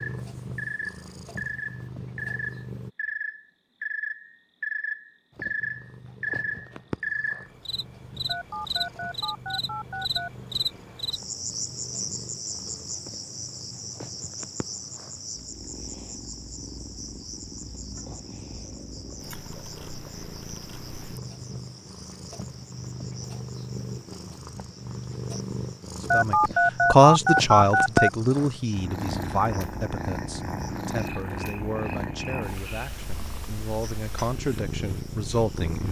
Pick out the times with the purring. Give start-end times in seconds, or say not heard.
0.0-2.9, 5.3-35.8.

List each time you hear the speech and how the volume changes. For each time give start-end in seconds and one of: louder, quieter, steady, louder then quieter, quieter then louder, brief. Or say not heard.
26.1-35.8 quieter then louder.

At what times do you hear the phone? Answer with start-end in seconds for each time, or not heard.
8.2-10.3, 26.1-28.1.